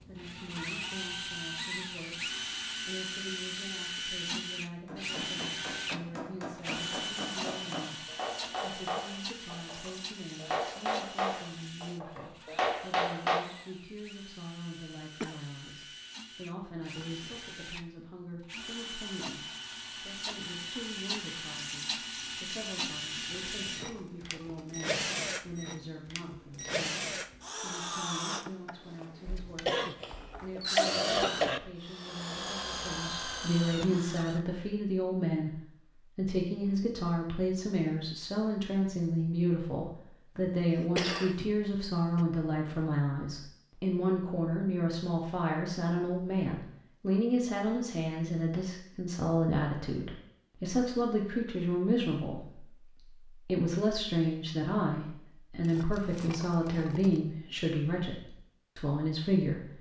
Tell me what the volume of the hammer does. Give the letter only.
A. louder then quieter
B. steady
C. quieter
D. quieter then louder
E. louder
E.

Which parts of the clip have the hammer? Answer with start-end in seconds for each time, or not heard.
4.8-13.4.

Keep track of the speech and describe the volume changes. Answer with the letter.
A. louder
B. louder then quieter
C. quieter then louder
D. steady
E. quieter
A.